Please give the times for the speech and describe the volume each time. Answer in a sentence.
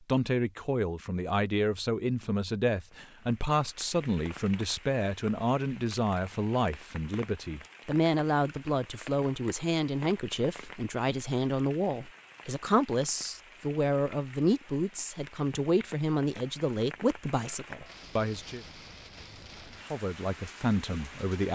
You can hear the speech from 0.1 to 18.6 s, at a steady volume; and briefly from 19.9 to 21.5 s.